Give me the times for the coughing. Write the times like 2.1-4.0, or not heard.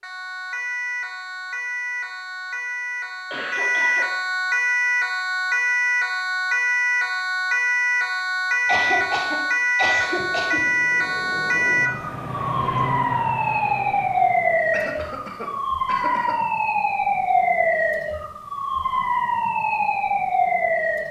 3.3-4.0, 8.7-10.6, 14.7-16.4.